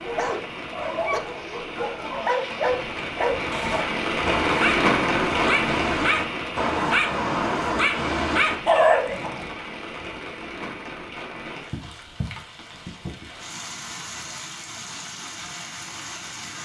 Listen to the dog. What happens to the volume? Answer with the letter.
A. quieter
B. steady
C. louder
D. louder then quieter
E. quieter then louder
C.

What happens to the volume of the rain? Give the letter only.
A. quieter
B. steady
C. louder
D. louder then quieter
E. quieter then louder
D.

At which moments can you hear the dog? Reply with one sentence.
The dog can be heard from 0.0 to 9.5 s.